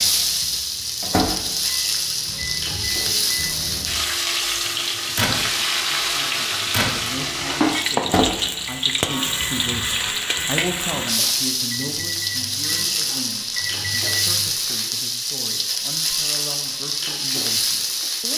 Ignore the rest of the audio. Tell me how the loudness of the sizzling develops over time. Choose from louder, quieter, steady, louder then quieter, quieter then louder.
steady.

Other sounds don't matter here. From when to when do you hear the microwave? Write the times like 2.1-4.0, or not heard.
0.0-14.5.